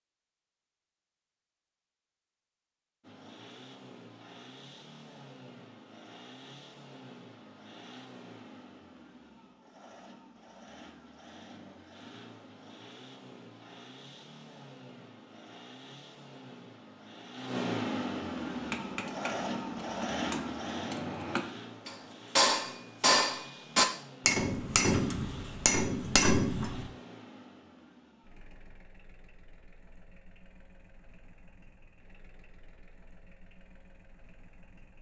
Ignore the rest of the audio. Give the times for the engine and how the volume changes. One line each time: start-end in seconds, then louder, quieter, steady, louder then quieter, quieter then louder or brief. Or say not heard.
3.0-34.9 louder then quieter.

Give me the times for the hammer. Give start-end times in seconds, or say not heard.
18.5-26.9.